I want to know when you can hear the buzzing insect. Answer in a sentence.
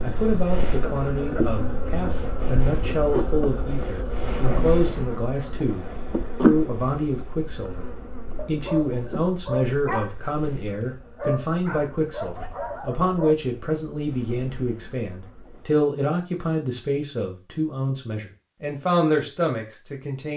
The buzzing insect can be heard from 0.0 to 15.8 s.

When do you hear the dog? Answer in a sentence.
You can hear the dog from 8.3 to 13.3 s.